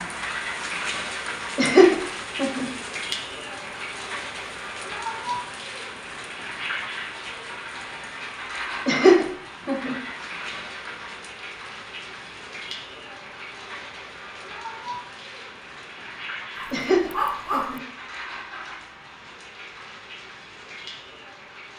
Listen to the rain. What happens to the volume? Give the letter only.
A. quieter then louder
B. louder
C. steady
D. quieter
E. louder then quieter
D.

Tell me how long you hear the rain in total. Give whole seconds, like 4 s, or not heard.
22 s.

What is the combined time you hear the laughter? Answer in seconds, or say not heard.
3 s.